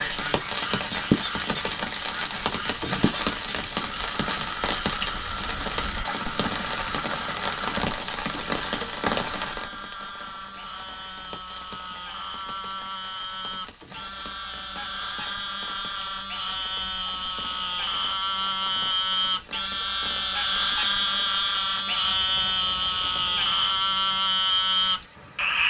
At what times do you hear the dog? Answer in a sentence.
You can't hear the dog here.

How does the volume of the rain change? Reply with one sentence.
The volume of the rain goes down.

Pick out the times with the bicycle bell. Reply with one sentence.
The bicycle bell can't be heard in this clip.